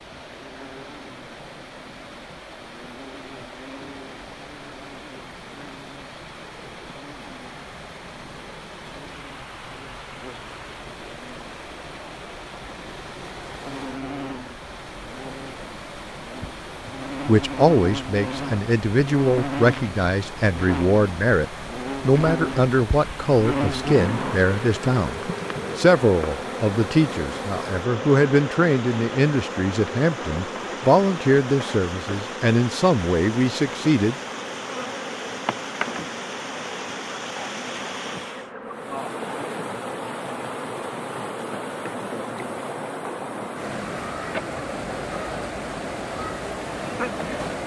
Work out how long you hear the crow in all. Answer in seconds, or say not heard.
not heard.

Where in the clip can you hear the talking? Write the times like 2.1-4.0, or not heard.
16.9-34.1.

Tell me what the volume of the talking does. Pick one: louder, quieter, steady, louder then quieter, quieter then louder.
steady.